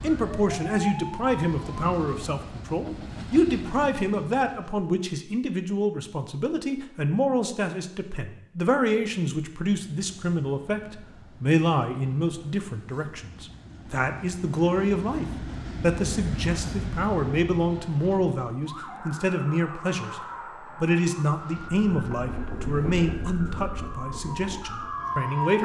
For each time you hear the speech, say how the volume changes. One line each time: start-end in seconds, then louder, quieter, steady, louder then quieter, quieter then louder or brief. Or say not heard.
0.0-25.5 steady.